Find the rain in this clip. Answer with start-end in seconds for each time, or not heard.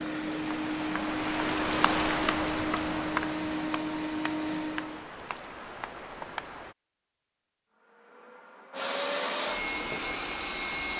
0.0-6.8.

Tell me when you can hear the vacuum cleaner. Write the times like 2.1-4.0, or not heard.
0.0-5.1, 7.7-10.9.